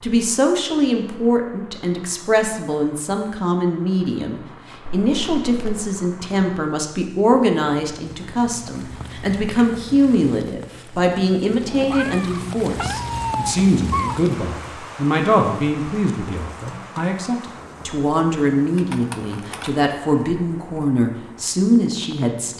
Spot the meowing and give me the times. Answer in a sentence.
The meowing can be heard from 11.7 to 14.2 s.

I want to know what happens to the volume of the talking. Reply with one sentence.
The loudness of the talking stays about the same.